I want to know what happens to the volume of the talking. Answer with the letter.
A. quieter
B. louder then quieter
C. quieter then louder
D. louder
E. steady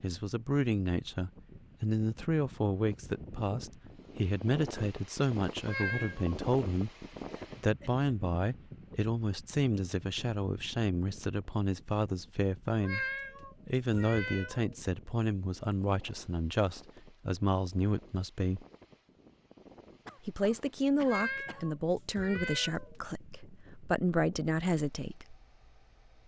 E.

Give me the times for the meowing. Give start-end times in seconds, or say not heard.
5.6-6.3, 12.8-14.8, 21.0-22.9.